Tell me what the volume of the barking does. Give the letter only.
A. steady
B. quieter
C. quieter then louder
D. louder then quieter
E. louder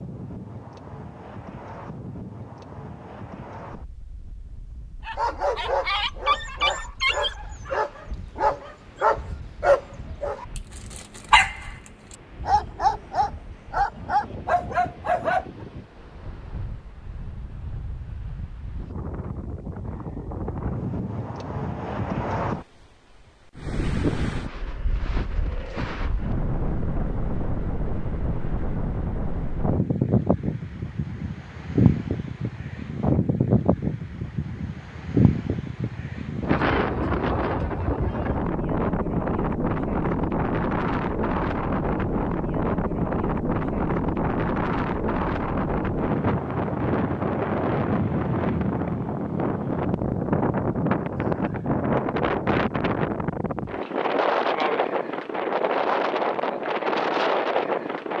A.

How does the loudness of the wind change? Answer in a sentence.
The loudness of the wind goes up.